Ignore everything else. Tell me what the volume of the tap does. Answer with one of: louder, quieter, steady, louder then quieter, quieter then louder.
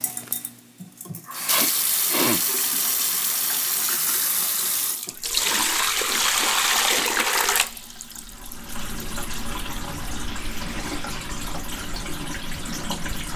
louder then quieter.